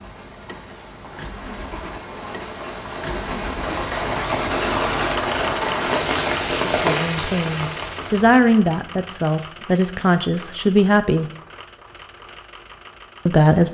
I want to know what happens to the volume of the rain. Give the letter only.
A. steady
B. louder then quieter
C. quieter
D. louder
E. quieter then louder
D.